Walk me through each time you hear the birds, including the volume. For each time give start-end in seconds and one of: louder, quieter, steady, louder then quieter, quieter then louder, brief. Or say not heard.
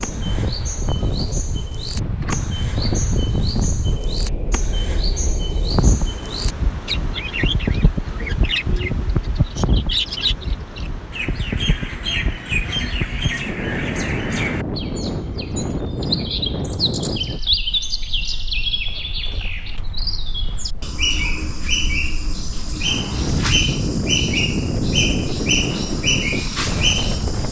0.0-27.4 louder.